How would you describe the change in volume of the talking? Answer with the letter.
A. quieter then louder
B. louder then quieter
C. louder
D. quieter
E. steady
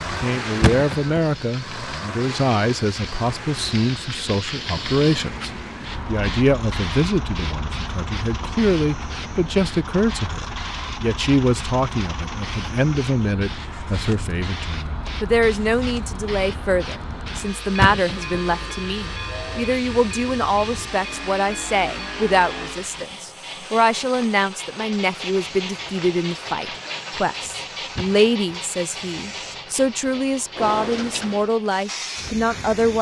E.